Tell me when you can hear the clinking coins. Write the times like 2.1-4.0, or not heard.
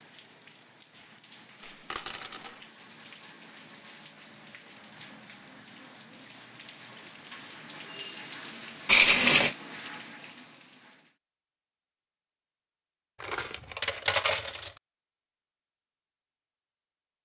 1.6-2.6, 8.8-9.6, 13.2-14.7.